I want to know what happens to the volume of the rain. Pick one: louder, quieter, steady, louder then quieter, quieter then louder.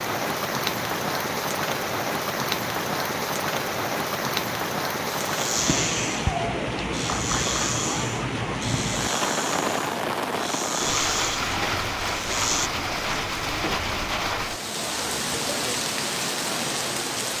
steady.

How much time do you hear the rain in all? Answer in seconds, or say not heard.
17 s.